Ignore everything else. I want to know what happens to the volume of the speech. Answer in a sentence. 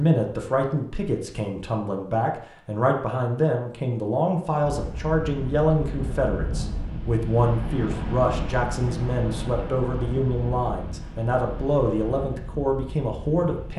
The volume of the speech stays about the same.